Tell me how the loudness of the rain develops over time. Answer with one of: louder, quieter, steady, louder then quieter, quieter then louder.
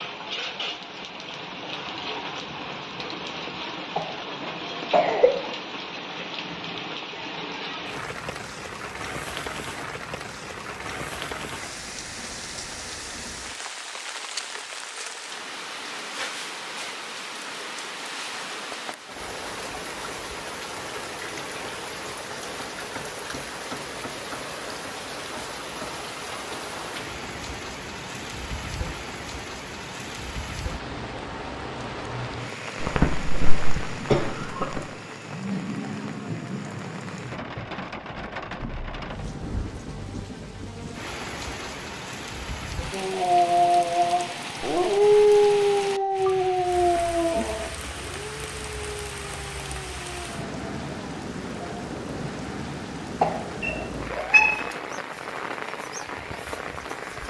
steady.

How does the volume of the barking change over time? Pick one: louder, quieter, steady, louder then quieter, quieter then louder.
quieter.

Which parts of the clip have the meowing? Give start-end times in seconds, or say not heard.
53.6-54.5.